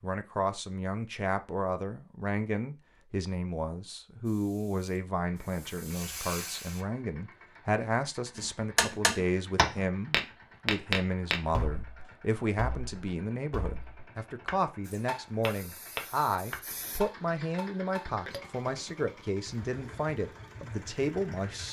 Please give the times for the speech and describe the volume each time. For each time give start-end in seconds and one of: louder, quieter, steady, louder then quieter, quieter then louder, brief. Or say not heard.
0.0-21.6 steady.